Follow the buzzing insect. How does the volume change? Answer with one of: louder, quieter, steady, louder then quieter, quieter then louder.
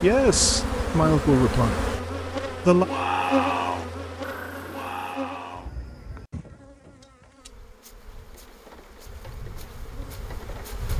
quieter then louder.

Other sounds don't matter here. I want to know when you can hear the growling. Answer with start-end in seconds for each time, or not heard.
4.2-5.2.